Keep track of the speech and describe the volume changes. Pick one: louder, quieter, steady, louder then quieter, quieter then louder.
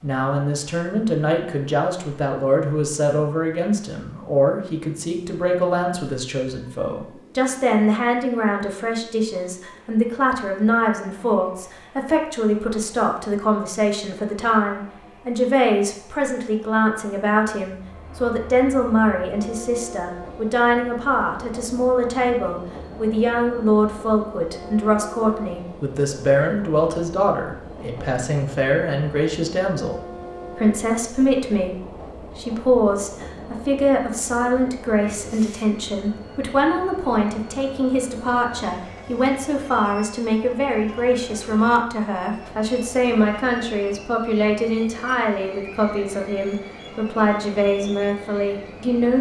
steady.